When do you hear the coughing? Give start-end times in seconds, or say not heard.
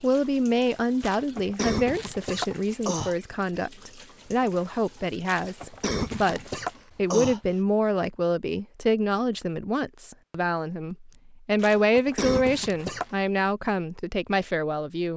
1.0-3.1, 5.2-7.5, 11.6-13.2.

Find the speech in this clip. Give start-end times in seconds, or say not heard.
0.0-15.1.